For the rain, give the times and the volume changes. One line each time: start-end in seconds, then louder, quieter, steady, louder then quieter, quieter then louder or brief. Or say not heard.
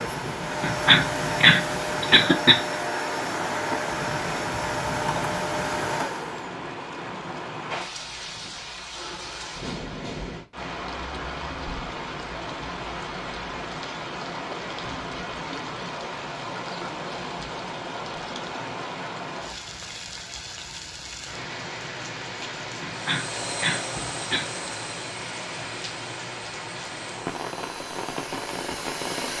0.0-29.3 steady.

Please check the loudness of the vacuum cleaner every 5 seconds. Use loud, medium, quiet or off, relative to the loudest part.
loud, loud, off, off, medium, medium.